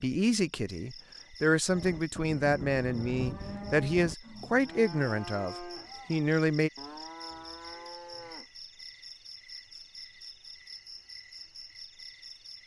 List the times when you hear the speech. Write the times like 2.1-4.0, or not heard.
0.0-6.7.